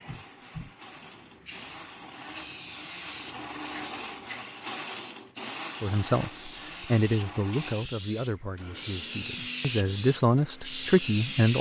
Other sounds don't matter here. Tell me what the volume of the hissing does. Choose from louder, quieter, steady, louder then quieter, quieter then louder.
louder.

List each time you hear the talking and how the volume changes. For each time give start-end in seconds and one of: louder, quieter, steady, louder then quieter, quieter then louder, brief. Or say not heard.
5.8-11.5 quieter then louder.